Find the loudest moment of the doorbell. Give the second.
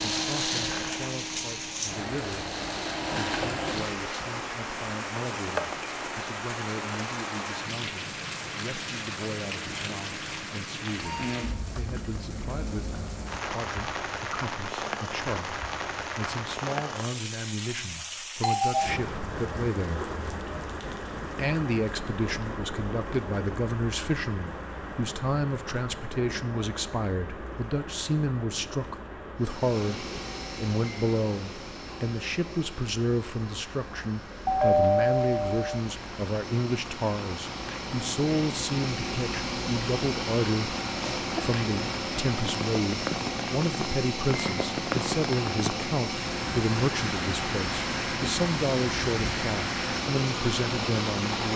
35 s.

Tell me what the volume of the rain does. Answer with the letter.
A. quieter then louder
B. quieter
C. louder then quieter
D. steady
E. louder
A.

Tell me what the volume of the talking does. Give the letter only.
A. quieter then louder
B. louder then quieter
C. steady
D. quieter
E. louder
E.